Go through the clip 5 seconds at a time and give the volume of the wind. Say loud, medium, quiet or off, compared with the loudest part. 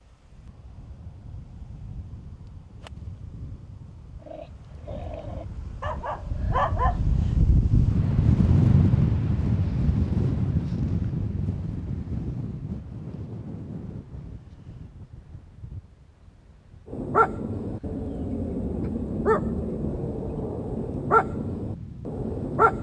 quiet, loud, medium, quiet, quiet.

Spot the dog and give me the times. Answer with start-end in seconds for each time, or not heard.
4.2-7.3, 16.9-22.7.